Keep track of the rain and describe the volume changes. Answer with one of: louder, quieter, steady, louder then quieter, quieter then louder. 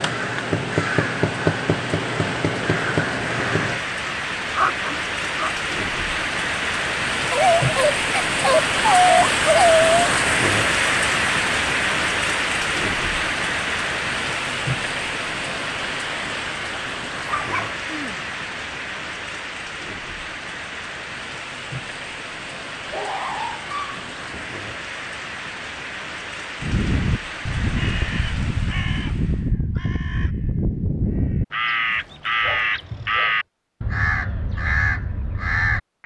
louder then quieter.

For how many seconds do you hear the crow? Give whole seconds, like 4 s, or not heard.
13 s.